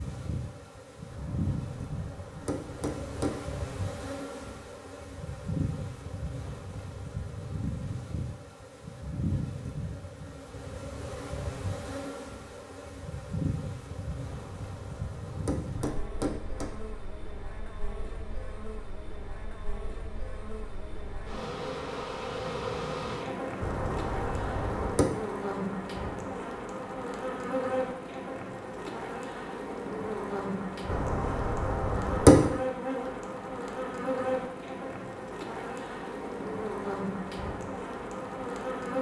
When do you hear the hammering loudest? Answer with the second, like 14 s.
32 s.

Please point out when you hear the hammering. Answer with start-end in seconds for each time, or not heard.
1.1-3.4, 14.3-16.7, 23.6-25.1, 30.9-32.5.